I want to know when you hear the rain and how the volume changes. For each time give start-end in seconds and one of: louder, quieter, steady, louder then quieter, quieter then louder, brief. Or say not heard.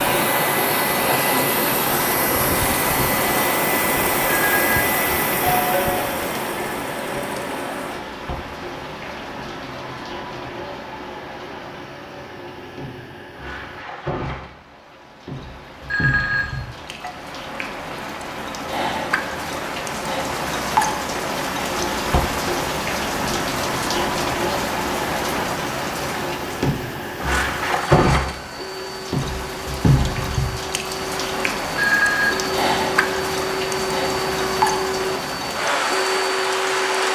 0.0-37.1 quieter then louder.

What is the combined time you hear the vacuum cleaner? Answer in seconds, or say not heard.
30 s.